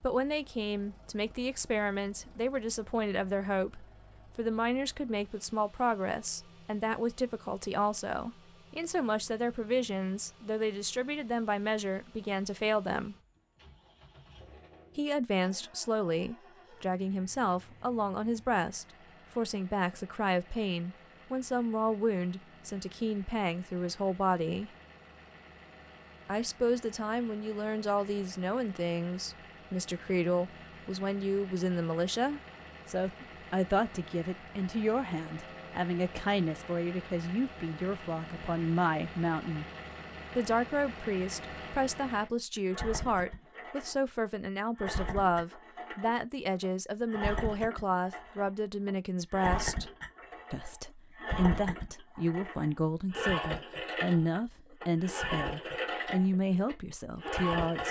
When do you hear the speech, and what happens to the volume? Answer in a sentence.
The speech can be heard from 0.0 to 13.2 s, at a steady volume; from 14.9 to 24.7 s, at a steady volume; from 26.2 to 39.6 s, at a steady volume; from 40.4 to 49.9 s, at a steady volume; and from 50.5 to 57.8 s, at a steady volume.